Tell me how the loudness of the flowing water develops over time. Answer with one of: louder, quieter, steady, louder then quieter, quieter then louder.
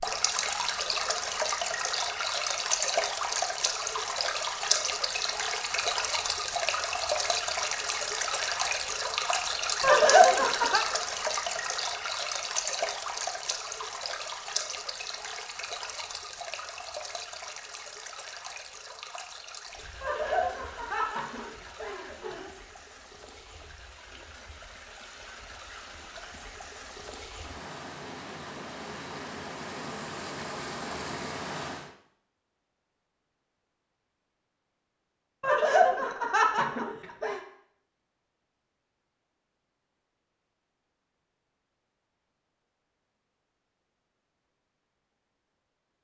quieter then louder.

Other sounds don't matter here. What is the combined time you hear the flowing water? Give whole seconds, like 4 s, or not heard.
32 s.